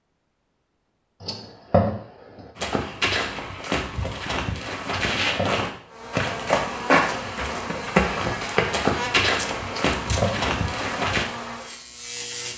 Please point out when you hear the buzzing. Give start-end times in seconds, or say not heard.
5.9-12.5.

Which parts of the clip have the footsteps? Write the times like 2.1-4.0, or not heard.
2.5-11.2.